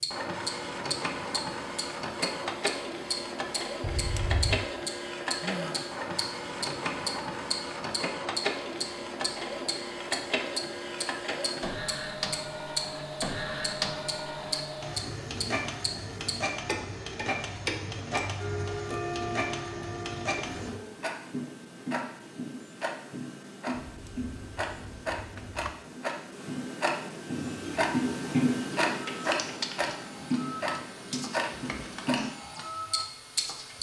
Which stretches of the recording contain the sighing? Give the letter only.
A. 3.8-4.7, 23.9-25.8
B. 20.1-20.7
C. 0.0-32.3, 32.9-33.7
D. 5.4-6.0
D.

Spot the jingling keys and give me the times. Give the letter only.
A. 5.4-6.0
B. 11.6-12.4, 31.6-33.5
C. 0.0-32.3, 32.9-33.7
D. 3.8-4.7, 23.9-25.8
D.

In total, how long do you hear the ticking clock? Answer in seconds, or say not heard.
33 s.